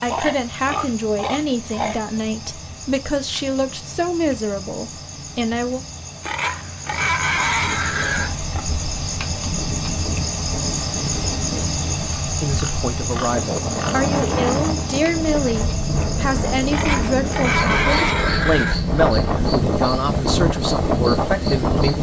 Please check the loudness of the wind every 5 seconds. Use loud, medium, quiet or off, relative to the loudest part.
off, quiet, medium, loud, loud.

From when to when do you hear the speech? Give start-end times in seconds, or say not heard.
0.0-5.8, 12.4-21.9.